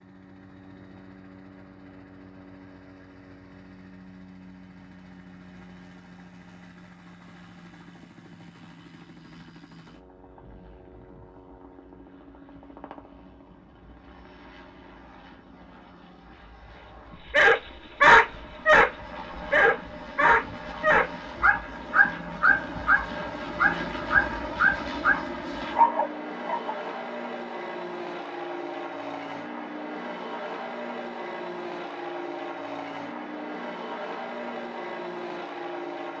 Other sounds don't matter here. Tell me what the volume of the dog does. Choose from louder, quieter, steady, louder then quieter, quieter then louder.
quieter.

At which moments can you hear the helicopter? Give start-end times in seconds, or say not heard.
0.0-36.1.